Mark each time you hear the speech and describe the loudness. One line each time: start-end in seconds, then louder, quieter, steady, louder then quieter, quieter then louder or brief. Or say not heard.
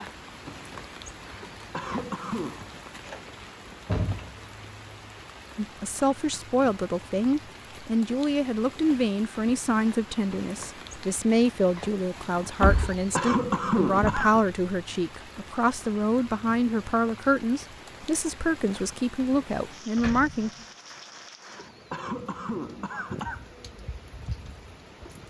5.5-20.5 steady.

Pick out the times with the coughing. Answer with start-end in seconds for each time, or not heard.
1.2-2.5, 12.7-14.4, 21.4-23.4.